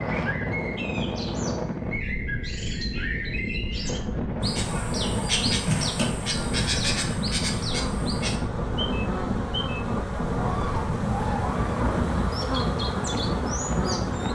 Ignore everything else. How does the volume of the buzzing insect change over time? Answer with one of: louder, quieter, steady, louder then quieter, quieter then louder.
louder.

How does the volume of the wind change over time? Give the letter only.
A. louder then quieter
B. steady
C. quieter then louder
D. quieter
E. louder
B.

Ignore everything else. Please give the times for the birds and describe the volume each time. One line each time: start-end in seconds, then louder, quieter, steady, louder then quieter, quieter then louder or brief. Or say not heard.
0.0-14.3 louder then quieter.